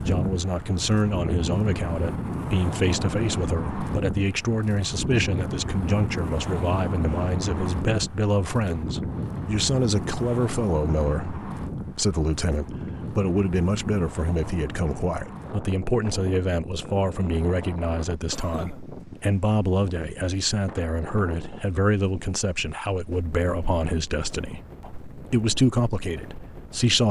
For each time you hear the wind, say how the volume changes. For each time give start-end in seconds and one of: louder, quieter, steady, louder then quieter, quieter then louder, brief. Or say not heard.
0.0-27.0 quieter.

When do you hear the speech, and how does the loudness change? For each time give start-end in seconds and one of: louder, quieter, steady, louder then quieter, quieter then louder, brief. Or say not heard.
0.0-27.0 steady.